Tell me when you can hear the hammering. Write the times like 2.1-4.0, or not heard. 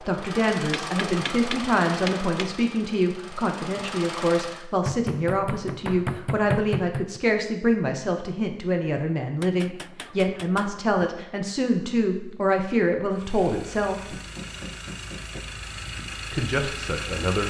0.6-2.5, 4.8-7.2, 9.4-11.1, 13.9-15.4.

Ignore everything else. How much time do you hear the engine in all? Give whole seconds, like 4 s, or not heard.
9 s.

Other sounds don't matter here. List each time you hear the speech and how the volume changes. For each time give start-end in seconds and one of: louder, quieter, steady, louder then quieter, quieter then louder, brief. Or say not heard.
0.0-14.2 steady
16.3-17.4 brief.